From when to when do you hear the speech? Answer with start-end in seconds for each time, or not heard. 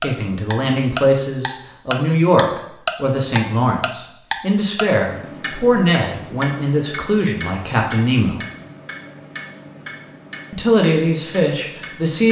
0.0-8.4, 10.5-12.2.